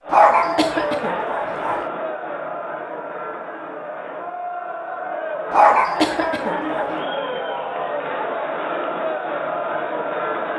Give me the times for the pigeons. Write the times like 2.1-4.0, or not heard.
not heard.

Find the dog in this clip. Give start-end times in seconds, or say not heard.
0.1-1.8, 5.5-6.9.